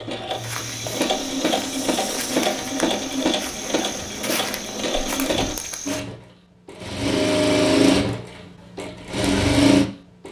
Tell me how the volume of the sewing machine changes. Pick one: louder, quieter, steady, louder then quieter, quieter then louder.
louder.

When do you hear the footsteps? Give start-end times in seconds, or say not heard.
0.3-6.0.